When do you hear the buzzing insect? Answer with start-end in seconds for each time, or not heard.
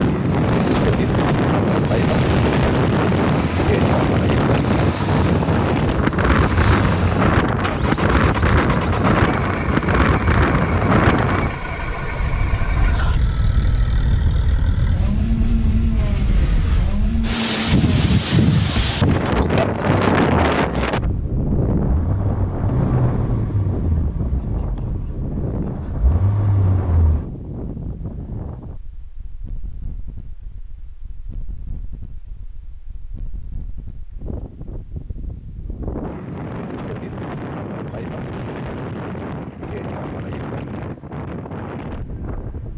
not heard.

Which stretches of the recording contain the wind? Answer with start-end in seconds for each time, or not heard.
0.0-42.7.